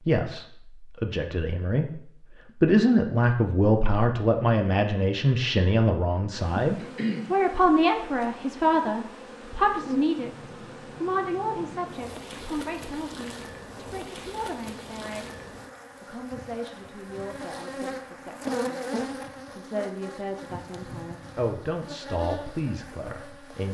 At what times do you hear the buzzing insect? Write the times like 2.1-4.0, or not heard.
6.3-23.6.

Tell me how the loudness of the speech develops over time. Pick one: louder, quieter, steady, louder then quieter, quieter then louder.
quieter then louder.